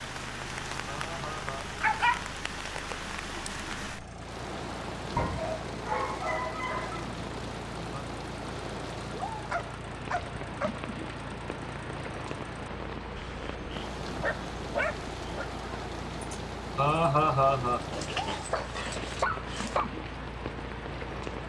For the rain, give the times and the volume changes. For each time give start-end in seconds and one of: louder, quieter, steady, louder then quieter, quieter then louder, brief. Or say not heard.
0.0-21.4 steady.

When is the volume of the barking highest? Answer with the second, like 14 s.
2 s.